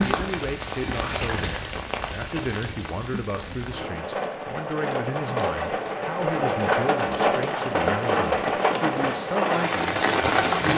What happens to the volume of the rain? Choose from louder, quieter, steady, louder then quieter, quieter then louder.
louder.